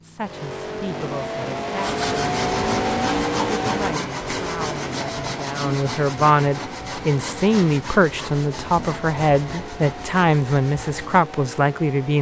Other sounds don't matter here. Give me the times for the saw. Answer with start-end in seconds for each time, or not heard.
1.8-11.2.